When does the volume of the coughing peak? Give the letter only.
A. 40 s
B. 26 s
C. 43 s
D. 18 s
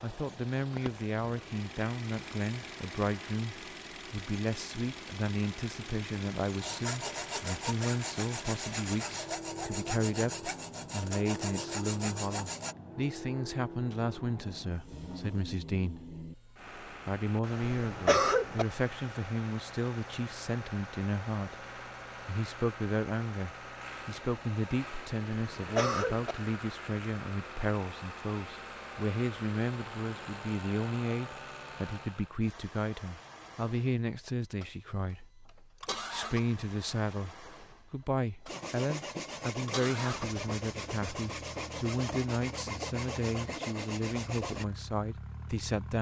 D.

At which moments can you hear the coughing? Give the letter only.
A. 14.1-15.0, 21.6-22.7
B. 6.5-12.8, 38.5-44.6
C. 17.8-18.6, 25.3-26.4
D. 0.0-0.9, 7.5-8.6
C.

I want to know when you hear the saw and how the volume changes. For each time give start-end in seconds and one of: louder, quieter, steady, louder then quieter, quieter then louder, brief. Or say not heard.
6.5-12.8 steady
38.5-44.6 steady.